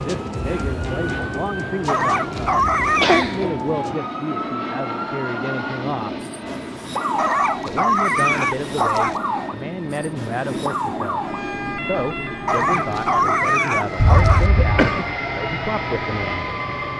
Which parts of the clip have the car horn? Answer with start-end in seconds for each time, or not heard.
not heard.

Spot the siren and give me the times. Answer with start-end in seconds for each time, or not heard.
0.0-16.9.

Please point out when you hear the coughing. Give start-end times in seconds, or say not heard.
3.0-3.5, 13.9-15.1.